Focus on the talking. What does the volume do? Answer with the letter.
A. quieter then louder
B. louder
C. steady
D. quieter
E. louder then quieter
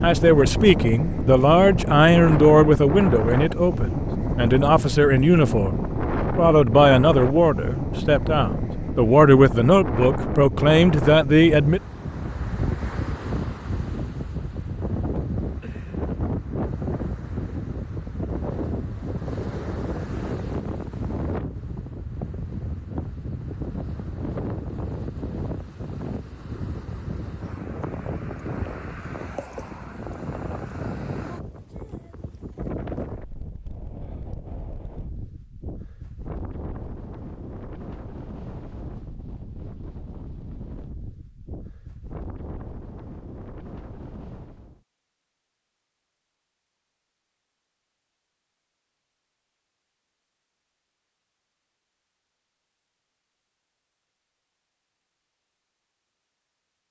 C.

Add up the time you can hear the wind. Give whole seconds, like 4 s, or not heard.
45 s.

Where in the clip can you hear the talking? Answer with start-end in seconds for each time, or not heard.
0.0-11.8.